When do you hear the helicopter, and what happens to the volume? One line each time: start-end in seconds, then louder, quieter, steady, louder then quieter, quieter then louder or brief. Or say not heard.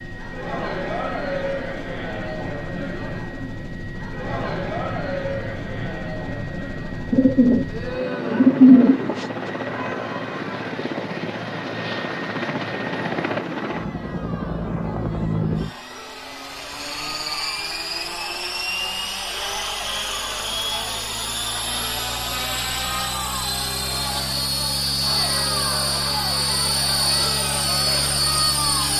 0.0-28.9 louder.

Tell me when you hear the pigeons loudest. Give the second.
9 s.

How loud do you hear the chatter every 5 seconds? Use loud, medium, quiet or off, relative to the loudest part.
loud, loud, medium, medium, medium, loud.